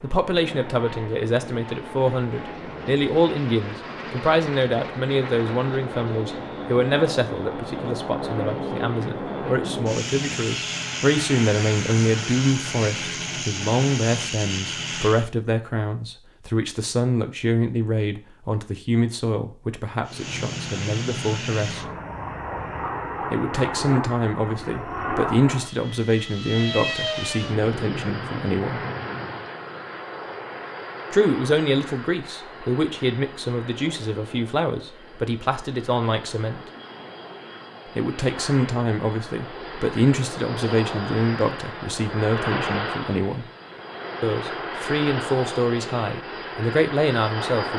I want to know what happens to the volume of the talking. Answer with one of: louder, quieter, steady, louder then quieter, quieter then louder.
steady.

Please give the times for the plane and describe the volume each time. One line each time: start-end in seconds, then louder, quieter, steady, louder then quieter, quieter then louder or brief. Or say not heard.
0.0-15.3 louder
20.1-47.7 quieter then louder.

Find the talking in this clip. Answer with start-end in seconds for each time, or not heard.
0.0-21.9, 23.3-28.8, 31.1-36.6, 38.0-43.5, 44.2-47.7.